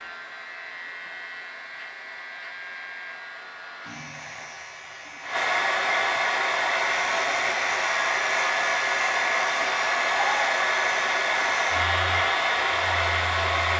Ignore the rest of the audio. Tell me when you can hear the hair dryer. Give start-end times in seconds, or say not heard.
0.0-13.7.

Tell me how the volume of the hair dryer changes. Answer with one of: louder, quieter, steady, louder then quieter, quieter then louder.
louder.